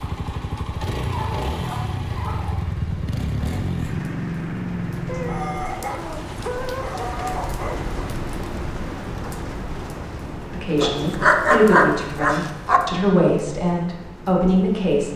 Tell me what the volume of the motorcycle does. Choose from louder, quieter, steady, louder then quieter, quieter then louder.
steady.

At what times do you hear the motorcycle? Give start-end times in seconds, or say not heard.
0.0-5.8.